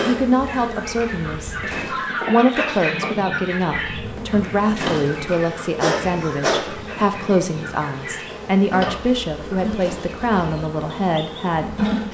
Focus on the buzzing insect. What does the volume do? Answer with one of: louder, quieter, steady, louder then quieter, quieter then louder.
louder then quieter.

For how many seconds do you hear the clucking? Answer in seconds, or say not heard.
11 s.